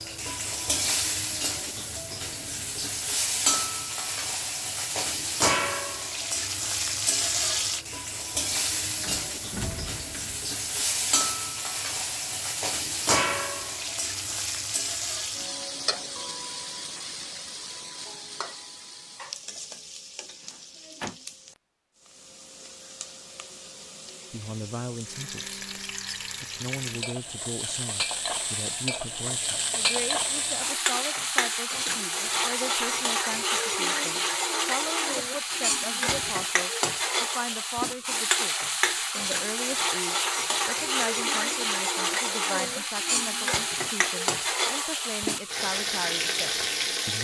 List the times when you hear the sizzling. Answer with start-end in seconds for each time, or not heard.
0.0-47.1.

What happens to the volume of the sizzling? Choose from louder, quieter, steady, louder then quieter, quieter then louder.
quieter then louder.